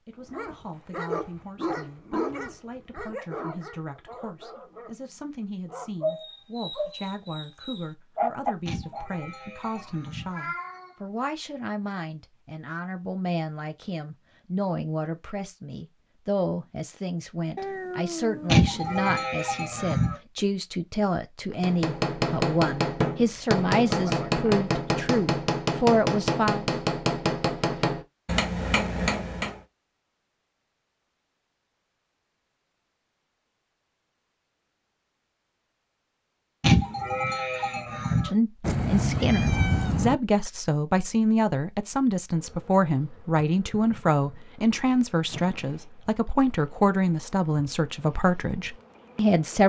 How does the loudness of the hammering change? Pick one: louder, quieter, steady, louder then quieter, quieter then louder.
steady.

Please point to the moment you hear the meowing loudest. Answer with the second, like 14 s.
40 s.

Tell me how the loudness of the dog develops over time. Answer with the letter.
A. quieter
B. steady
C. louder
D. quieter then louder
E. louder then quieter
D.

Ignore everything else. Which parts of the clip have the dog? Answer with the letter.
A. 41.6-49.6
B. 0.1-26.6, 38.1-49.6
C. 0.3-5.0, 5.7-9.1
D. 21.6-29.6
C.